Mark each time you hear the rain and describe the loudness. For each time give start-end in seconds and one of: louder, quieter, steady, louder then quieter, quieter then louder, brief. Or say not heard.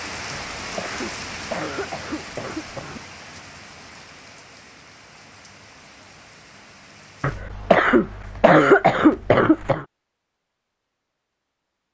0.0-7.5 quieter.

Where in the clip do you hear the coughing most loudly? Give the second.
9 s.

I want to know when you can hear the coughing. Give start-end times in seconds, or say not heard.
0.3-3.0, 7.2-9.8.